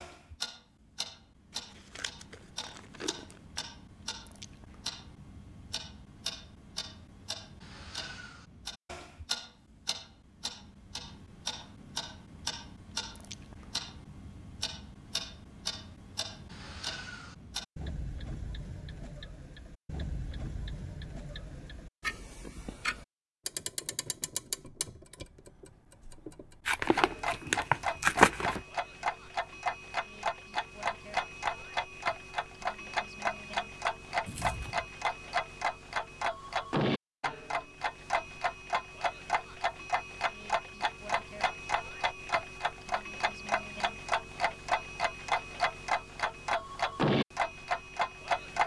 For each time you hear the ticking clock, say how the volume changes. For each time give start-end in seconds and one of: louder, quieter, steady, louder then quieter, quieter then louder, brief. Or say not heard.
0.0-48.6 louder.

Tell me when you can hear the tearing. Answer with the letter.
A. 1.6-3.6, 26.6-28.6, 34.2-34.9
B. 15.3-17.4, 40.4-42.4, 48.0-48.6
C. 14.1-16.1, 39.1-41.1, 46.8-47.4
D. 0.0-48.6
A.